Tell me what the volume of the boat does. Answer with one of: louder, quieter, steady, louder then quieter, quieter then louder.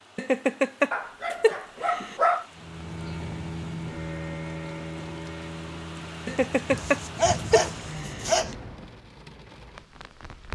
quieter.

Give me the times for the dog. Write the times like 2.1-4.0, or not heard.
0.9-2.5, 6.3-8.6.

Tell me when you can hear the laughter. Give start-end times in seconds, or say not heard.
0.1-2.1, 6.2-8.2.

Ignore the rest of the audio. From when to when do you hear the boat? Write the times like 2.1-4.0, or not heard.
2.5-9.1.